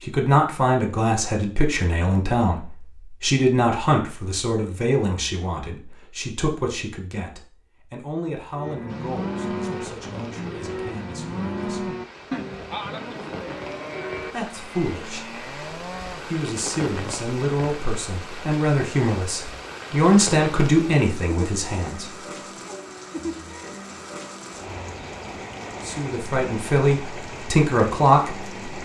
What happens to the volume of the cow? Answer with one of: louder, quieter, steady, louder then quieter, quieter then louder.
quieter.